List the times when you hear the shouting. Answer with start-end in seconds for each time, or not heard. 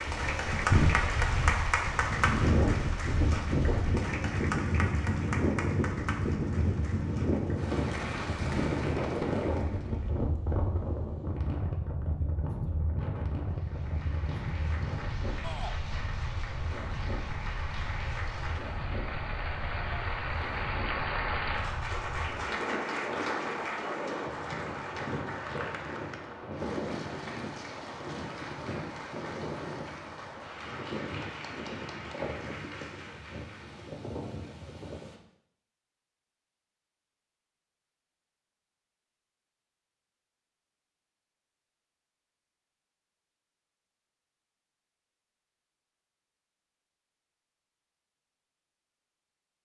15.4-15.8.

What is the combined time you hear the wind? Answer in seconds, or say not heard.
35 s.